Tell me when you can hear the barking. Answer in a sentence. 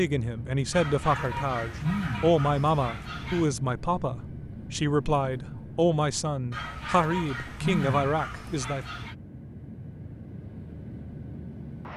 You can hear the barking from 0.7 to 3.5 s and from 6.5 to 9.2 s.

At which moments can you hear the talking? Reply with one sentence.
The talking can be heard from 0.0 to 8.8 s.